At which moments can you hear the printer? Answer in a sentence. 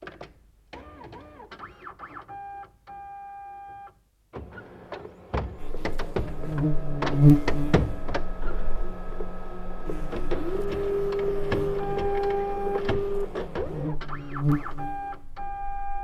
The printer can be heard from 0.0 to 15.9 s.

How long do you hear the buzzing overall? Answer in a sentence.
The buzzing can be heard for 10 seconds in total.